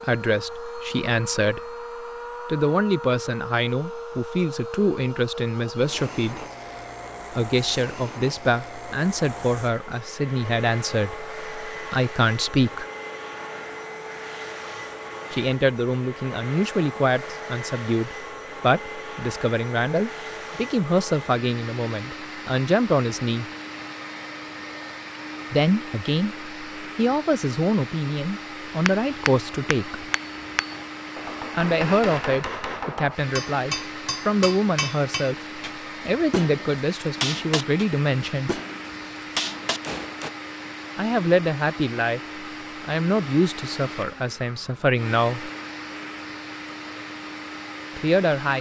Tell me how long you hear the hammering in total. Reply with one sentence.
You can hear the hammering for 12 seconds altogether.